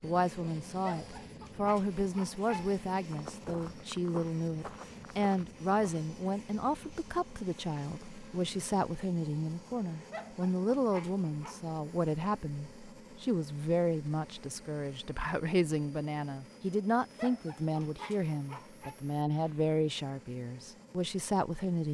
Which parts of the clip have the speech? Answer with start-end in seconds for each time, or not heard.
0.0-21.8.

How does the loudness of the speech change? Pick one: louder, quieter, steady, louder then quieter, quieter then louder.
steady.